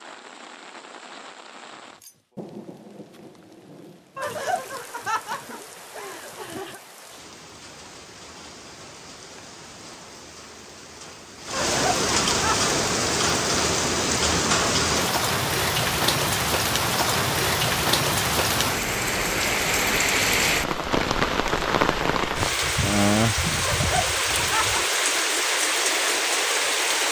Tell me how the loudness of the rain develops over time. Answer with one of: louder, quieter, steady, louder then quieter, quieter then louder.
louder.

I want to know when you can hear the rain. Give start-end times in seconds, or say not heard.
0.0-27.0.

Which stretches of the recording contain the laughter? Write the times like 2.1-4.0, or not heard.
4.2-6.8, 11.5-12.6, 23.6-24.9.